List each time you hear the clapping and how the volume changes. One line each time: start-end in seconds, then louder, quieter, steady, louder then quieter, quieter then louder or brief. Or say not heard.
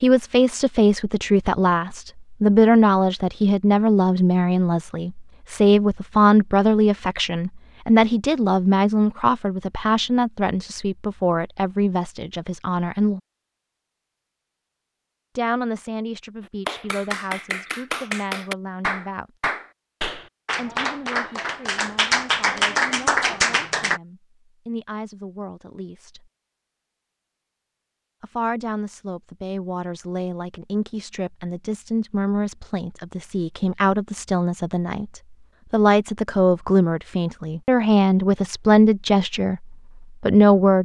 16.6-24.0 louder.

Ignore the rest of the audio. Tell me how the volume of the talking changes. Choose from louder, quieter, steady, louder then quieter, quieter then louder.
quieter then louder.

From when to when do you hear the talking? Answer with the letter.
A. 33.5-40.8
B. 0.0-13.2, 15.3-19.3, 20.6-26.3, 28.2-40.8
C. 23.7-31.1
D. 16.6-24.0
B.